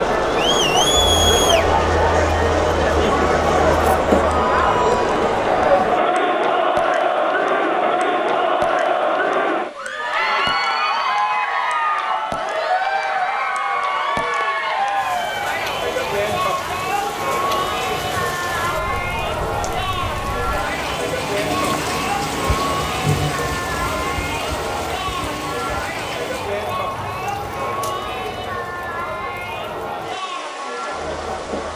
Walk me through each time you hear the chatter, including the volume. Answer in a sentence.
You can hear the chatter from 0.0 to 31.7 s, getting quieter.